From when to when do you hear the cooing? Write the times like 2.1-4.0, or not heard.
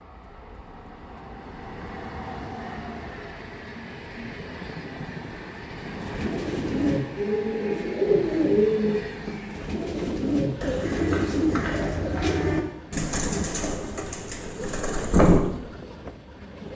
5.8-15.4.